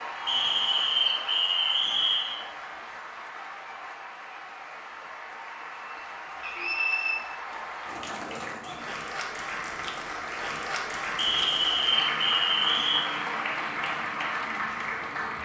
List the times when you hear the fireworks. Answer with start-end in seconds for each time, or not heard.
not heard.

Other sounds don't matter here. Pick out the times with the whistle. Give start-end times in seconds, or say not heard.
0.2-2.4, 6.4-7.2, 11.2-13.0.